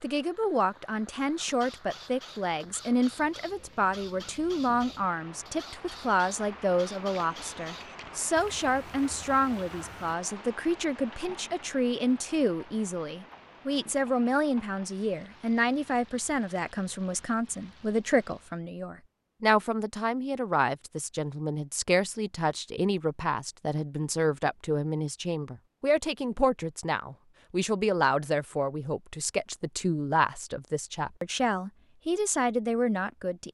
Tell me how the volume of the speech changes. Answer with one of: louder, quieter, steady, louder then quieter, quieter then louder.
steady.